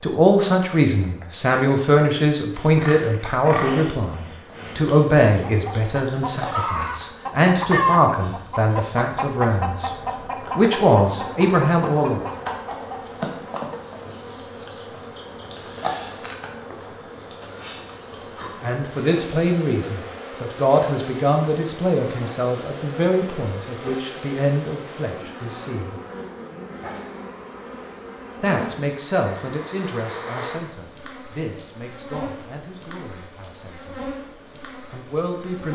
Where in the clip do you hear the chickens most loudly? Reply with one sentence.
The loudest moment of the chickens is at 8 seconds.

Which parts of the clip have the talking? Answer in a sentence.
The talking can be heard from 0.0 to 9.9 s, from 10.6 to 12.2 s, from 18.6 to 25.9 s, from 28.4 to 34.0 s and from 34.9 to 35.7 s.